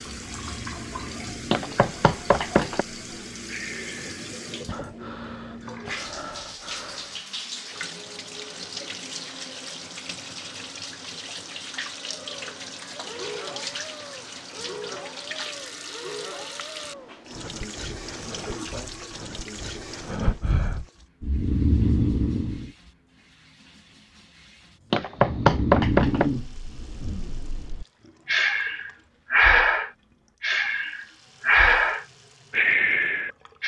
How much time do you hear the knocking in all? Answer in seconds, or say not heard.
3 s.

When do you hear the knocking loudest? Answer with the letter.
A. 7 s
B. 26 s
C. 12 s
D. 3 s
B.